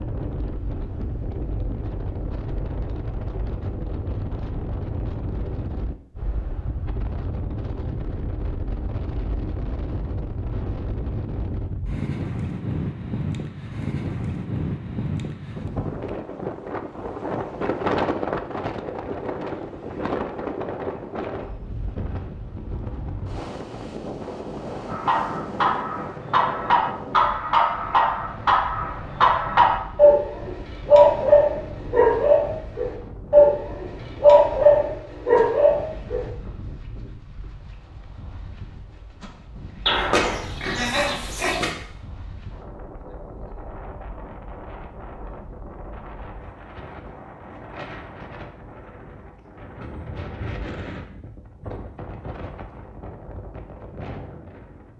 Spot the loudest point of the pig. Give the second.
40 s.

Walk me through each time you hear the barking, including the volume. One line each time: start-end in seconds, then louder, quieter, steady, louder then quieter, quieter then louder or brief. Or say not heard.
24.9-36.2 louder.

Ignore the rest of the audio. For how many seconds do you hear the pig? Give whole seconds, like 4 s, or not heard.
2 s.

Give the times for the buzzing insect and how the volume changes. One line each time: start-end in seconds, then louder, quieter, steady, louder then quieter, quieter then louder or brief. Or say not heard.
not heard.